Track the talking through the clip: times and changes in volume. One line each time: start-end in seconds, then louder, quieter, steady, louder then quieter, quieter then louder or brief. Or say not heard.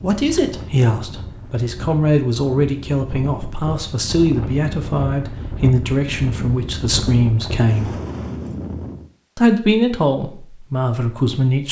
0.0-8.0 steady
9.3-11.6 brief.